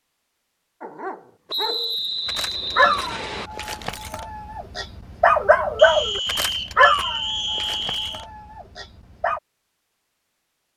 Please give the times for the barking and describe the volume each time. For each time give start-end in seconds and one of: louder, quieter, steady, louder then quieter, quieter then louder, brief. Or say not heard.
0.8-9.4 louder then quieter.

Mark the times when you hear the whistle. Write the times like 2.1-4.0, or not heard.
1.4-3.5, 5.8-8.2.